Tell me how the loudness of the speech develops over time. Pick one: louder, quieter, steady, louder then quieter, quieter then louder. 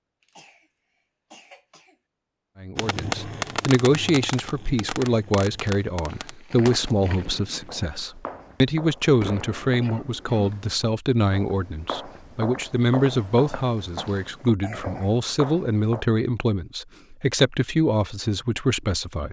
steady.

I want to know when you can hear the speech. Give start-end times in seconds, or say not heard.
2.6-19.2.